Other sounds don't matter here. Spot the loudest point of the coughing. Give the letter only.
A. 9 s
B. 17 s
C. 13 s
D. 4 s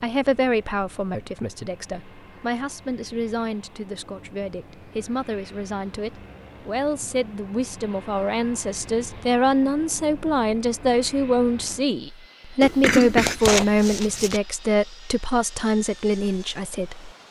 C.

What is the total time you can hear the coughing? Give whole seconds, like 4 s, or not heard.
2 s.